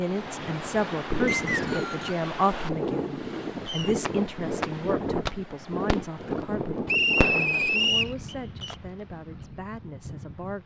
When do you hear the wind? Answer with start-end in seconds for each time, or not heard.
0.0-10.6.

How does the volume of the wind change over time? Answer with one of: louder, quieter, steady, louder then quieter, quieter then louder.
quieter.